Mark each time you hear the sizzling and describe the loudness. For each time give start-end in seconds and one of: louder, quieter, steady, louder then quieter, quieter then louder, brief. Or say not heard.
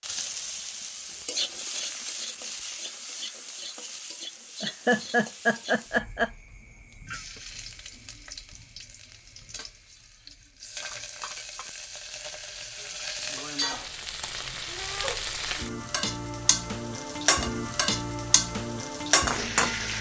0.0-19.9 quieter then louder.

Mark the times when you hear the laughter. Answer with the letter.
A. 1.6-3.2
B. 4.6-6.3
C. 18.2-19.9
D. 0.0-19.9
B.